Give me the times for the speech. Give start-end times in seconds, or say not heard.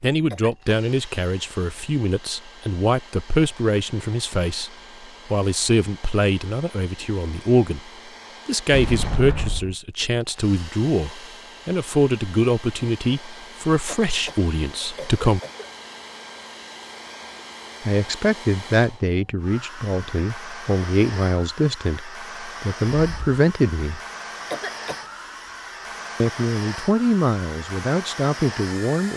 0.0-7.8, 8.4-15.4, 17.9-24.0, 26.2-29.1.